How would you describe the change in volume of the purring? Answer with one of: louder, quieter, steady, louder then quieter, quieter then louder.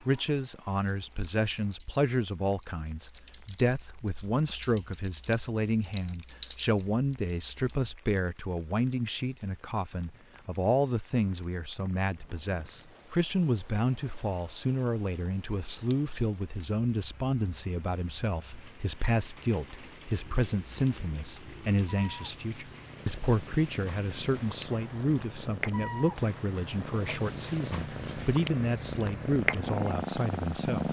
louder.